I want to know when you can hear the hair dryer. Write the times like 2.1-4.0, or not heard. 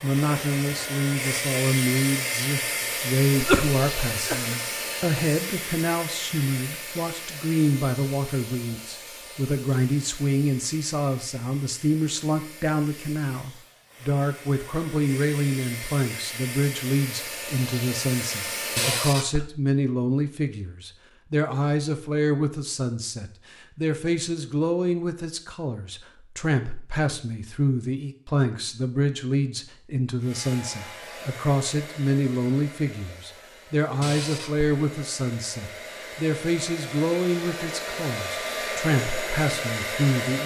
0.0-19.1, 30.2-40.4.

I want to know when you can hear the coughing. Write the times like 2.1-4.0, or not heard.
2.8-4.5, 18.8-19.4, 34.0-34.6.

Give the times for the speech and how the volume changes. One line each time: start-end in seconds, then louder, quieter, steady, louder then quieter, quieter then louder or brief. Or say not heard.
0.0-40.4 steady.